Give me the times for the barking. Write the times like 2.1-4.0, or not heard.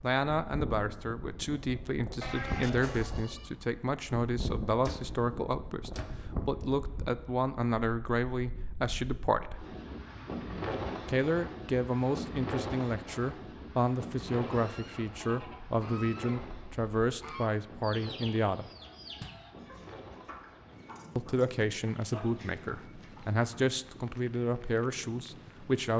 not heard.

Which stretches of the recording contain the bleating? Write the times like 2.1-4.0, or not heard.
2.2-3.5.